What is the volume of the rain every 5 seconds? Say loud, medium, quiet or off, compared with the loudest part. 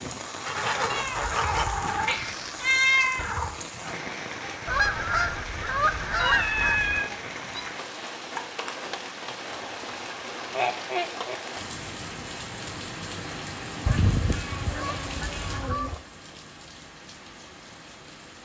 loud, loud, loud, medium.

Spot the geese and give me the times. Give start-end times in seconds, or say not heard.
0.4-2.4, 4.7-7.0, 9.4-11.3, 13.8-16.0.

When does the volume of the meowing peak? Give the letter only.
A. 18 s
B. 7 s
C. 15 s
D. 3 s
D.